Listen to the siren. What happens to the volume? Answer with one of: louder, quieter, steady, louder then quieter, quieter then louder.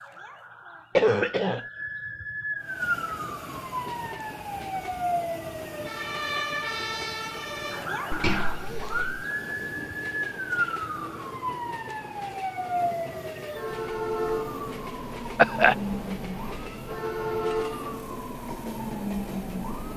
steady.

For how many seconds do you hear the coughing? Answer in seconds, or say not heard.
2 s.